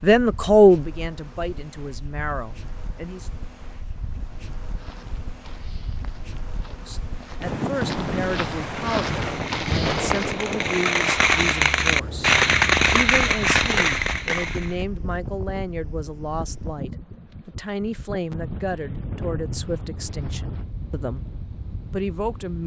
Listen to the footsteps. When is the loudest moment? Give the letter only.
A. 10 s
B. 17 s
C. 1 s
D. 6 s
A.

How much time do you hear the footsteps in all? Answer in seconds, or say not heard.
6 s.